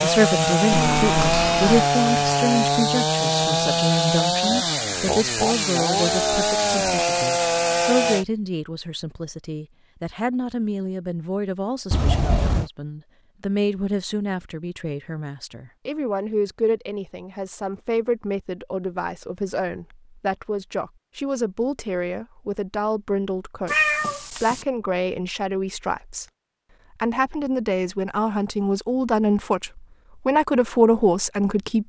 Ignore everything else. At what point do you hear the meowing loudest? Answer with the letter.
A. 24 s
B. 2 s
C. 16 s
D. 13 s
A.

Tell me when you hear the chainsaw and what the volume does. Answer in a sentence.
The chainsaw can be heard from 0.0 to 8.2 s, at a steady volume.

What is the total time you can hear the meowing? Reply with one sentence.
The meowing can be heard for 3 seconds in total.